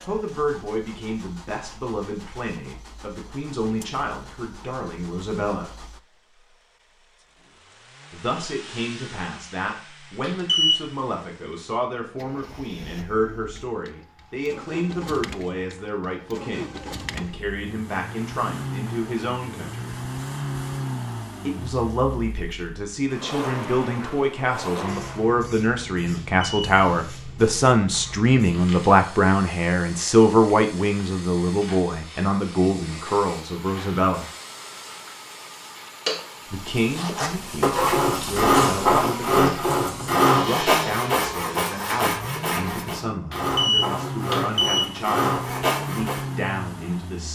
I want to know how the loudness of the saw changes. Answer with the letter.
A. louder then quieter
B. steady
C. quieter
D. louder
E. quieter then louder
C.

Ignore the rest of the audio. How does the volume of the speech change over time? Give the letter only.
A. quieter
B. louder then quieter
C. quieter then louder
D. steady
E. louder
B.